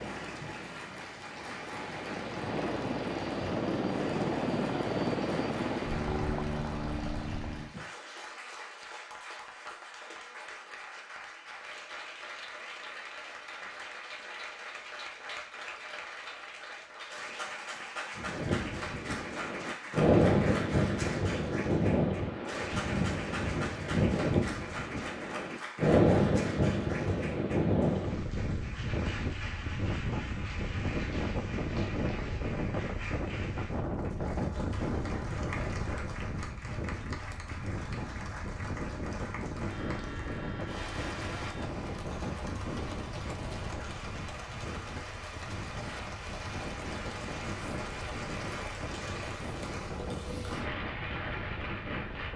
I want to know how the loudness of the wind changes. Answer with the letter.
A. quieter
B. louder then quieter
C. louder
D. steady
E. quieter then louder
A.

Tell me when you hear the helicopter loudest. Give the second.
5 s.